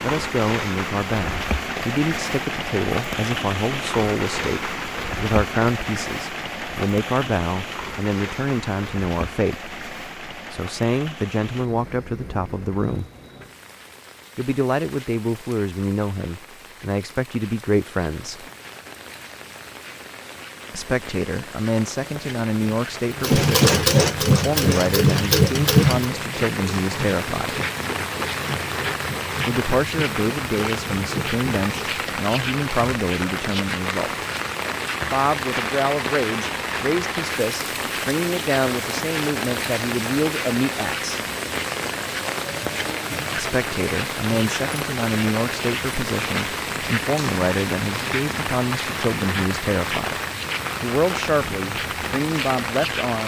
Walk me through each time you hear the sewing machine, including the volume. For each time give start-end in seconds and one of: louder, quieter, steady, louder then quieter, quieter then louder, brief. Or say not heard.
23.1-32.0 quieter.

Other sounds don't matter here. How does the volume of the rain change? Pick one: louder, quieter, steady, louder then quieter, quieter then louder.
quieter then louder.